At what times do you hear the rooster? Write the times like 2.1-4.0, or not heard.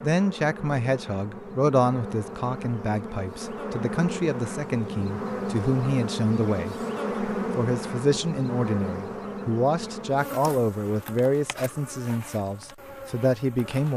not heard.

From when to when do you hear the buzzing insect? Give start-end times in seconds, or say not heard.
0.0-13.9.